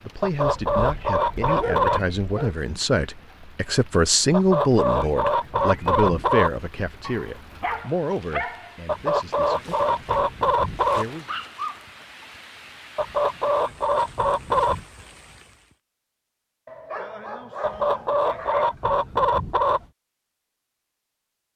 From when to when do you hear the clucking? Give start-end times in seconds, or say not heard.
0.2-2.0, 4.3-6.5, 8.8-11.1, 12.9-14.8, 17.6-19.9.